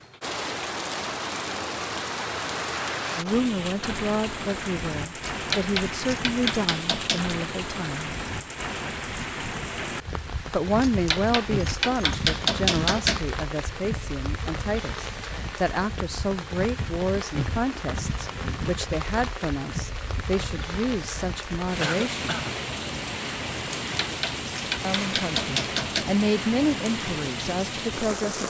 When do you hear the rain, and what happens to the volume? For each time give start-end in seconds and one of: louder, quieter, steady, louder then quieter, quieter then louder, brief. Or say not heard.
0.0-28.4 steady.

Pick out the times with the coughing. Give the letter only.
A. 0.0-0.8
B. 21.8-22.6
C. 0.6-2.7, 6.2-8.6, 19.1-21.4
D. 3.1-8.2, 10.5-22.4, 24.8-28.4
B.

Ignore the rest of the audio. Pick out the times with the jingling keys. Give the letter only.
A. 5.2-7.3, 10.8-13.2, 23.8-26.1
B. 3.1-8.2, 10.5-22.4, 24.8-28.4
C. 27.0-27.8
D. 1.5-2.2
A.